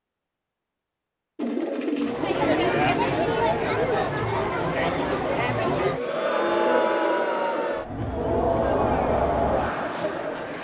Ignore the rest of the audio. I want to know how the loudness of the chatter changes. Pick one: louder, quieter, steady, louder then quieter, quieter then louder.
steady.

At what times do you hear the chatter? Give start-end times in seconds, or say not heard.
1.9-10.5.